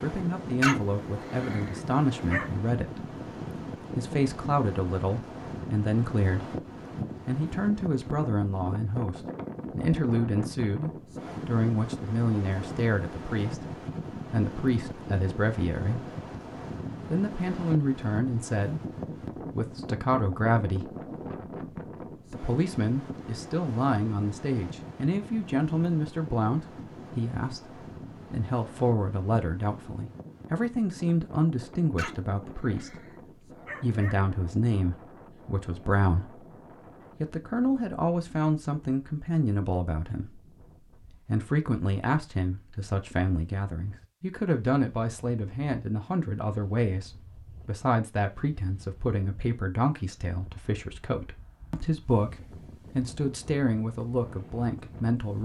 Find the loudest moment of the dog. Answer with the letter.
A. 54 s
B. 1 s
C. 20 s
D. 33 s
B.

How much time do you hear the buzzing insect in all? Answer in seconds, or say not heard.
not heard.